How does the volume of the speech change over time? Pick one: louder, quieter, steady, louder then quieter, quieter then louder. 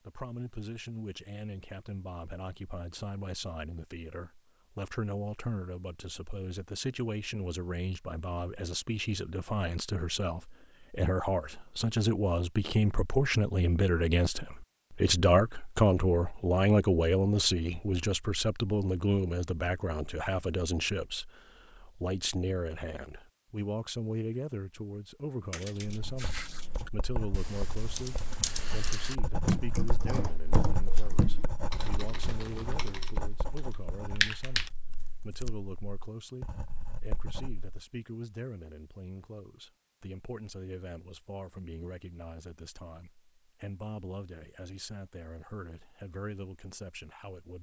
louder then quieter.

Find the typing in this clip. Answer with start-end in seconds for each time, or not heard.
25.5-34.7.